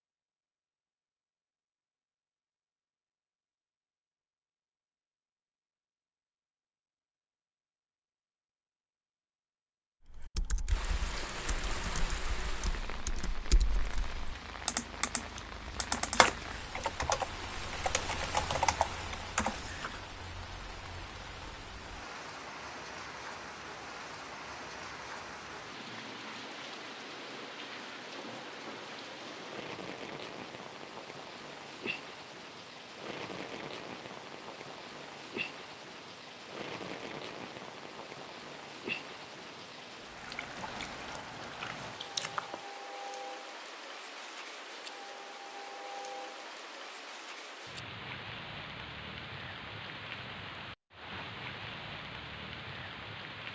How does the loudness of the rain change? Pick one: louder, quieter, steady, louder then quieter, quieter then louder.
steady.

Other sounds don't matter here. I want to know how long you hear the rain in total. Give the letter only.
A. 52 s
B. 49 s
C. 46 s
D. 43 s
D.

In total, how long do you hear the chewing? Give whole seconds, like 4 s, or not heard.
2 s.